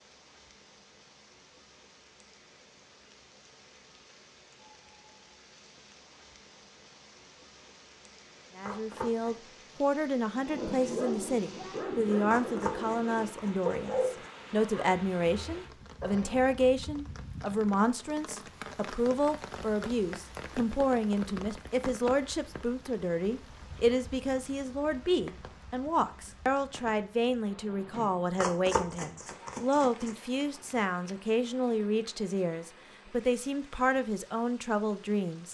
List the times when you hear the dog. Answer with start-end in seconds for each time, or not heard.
10.3-16.6.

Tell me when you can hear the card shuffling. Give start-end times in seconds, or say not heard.
8.6-9.6, 12.2-14.3, 28.4-30.1.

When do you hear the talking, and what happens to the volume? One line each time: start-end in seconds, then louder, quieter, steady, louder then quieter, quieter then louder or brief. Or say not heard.
8.6-35.5 steady.